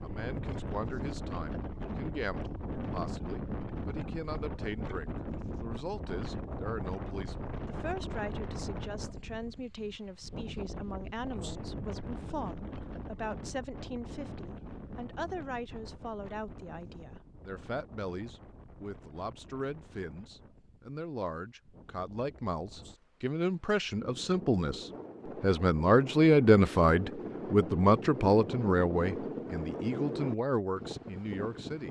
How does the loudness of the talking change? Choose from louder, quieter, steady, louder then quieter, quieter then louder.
louder.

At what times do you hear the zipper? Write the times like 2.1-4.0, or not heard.
not heard.